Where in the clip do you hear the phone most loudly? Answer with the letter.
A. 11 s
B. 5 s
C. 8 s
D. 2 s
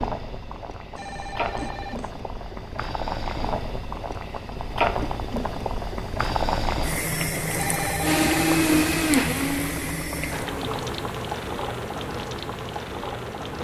C.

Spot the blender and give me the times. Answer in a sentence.
You can hear the blender from 8.0 to 10.6 s.